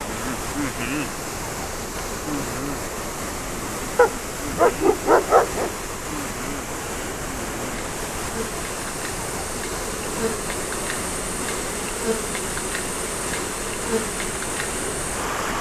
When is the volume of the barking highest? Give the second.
5 s.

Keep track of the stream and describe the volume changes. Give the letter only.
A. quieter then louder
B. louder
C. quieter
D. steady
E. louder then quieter
D.